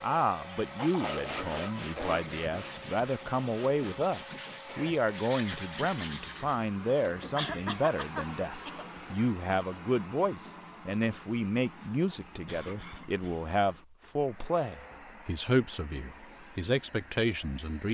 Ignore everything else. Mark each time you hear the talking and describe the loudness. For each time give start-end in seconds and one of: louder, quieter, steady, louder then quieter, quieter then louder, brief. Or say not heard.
0.0-17.8 steady.